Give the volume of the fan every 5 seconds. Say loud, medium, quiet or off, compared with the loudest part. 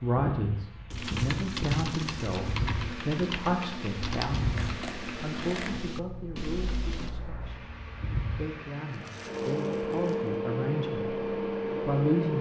medium, medium, loud.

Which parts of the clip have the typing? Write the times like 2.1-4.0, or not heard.
0.9-7.2.